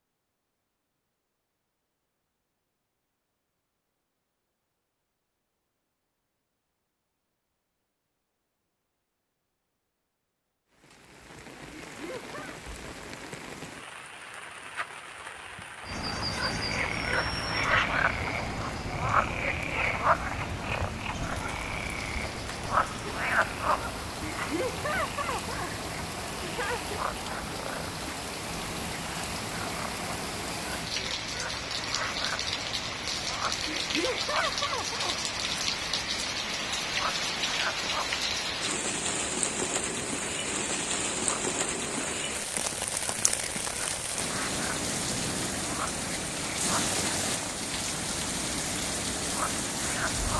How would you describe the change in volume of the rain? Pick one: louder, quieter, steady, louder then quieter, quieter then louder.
louder.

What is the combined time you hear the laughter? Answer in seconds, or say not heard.
5 s.